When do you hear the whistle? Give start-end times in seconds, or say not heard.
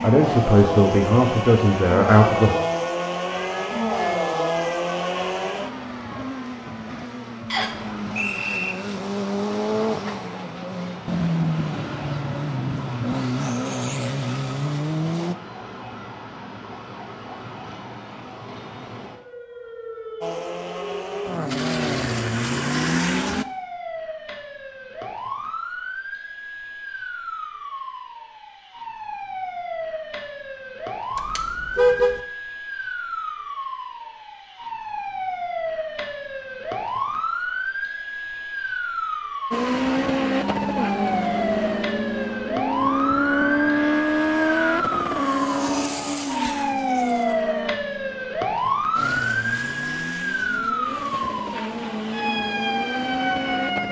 7.5-8.8.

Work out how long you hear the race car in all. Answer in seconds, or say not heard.
33 s.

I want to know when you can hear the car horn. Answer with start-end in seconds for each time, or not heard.
31.1-32.2.